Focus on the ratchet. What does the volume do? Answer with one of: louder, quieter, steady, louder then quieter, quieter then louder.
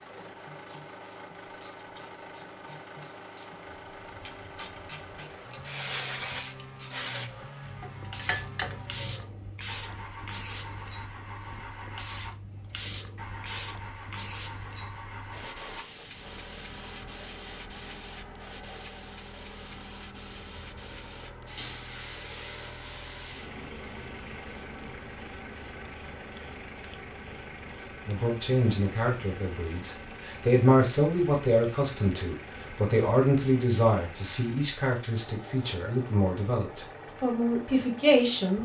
louder.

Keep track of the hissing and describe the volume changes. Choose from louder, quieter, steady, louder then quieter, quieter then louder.
quieter.